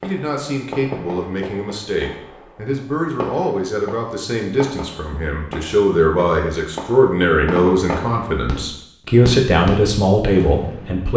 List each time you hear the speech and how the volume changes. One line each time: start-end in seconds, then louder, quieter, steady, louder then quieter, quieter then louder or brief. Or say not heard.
0.0-11.1 louder.